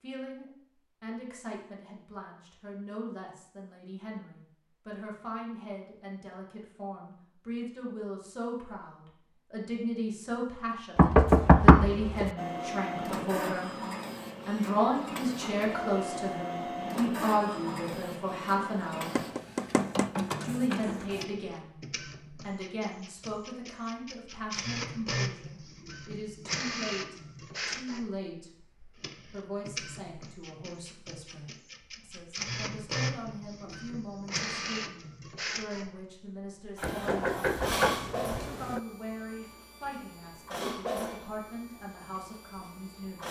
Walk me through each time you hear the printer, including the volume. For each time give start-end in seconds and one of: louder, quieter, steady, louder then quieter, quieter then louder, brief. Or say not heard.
12.3-43.2 steady.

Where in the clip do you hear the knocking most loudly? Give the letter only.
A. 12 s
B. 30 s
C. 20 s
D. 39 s
A.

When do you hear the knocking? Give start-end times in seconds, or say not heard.
10.9-12.3, 19.1-20.6, 36.8-38.8.